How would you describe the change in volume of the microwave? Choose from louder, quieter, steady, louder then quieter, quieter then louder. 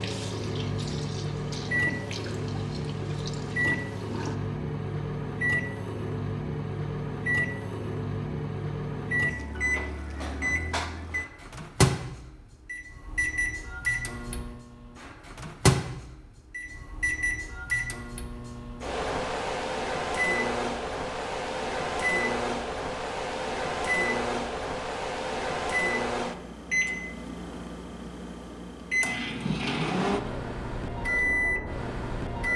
steady.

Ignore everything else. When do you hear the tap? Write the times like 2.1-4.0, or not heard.
0.0-4.3.